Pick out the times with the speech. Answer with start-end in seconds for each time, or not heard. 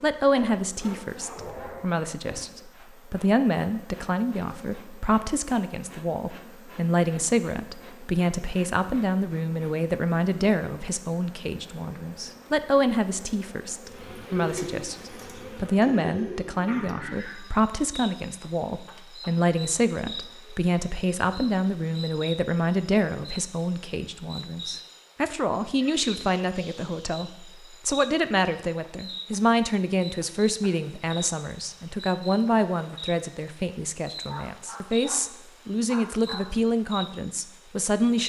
0.0-38.2.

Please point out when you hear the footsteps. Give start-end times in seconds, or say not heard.
not heard.